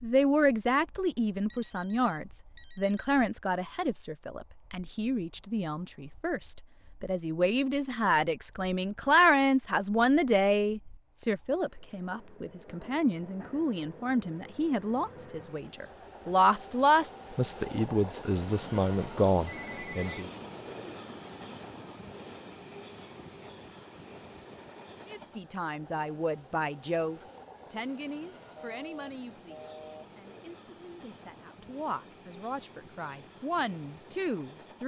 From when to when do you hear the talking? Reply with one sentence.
You can hear the talking from 0.0 to 20.3 s and from 25.1 to 34.8 s.